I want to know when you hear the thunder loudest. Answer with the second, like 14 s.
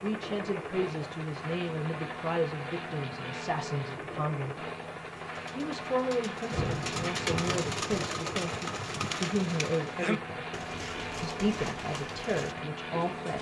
7 s.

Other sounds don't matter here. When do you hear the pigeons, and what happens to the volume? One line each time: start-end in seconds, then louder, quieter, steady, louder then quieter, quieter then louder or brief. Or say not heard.
5.2-13.3 louder then quieter.